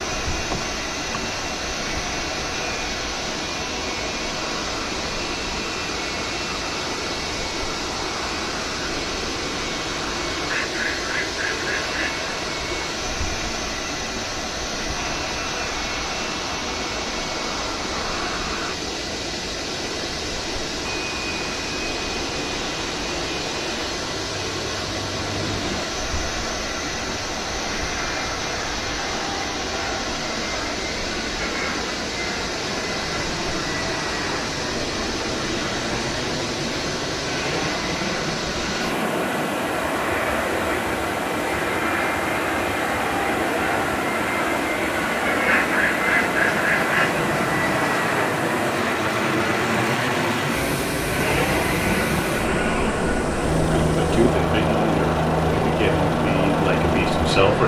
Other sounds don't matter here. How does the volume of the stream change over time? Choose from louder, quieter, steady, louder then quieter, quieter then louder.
steady.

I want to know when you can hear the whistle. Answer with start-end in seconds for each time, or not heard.
not heard.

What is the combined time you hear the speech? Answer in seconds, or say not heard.
4 s.